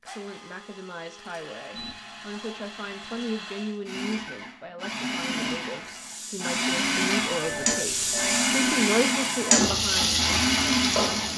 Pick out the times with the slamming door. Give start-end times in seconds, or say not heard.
not heard.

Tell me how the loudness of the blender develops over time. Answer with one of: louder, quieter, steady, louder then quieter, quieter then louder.
louder.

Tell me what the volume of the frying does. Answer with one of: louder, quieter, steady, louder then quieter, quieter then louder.
louder.